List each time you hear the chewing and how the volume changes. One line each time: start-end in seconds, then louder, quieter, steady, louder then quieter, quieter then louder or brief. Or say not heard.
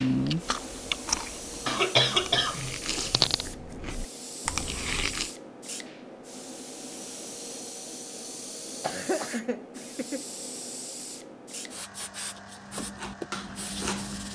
0.0-5.3 quieter then louder
12.7-14.3 brief.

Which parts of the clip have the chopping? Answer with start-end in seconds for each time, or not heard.
not heard.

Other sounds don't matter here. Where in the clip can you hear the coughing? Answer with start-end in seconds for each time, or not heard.
1.6-3.5, 8.8-10.2.